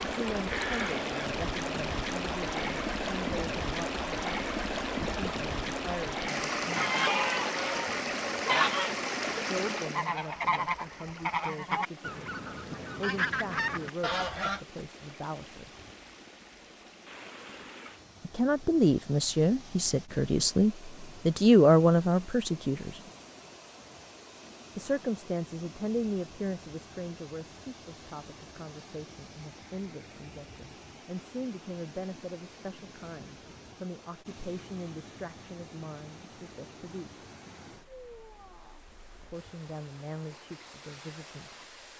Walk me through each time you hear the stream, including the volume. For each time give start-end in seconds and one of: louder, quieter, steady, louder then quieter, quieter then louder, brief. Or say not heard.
0.0-41.9 quieter.